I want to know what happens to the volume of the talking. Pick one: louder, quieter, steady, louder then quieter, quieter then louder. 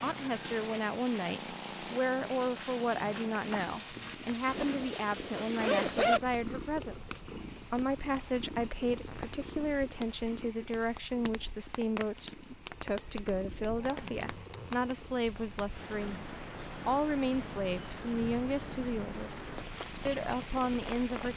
steady.